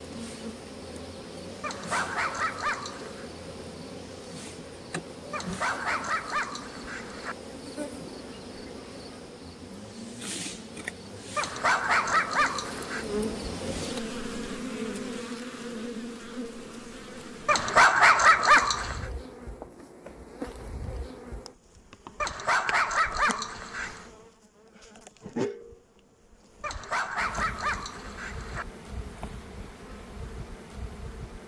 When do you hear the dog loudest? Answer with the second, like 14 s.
18 s.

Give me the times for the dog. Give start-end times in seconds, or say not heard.
1.6-3.2, 5.3-7.3, 11.3-13.1, 17.4-19.1, 22.2-24.1, 26.6-28.6.